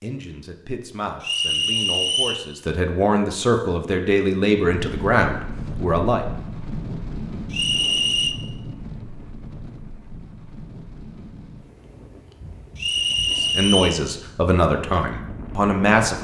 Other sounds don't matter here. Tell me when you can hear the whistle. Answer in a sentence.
The whistle can be heard from 1.2 to 2.5 s, from 7.5 to 8.3 s and from 12.8 to 14.0 s.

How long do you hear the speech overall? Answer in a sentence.
You can hear the speech for 9 seconds altogether.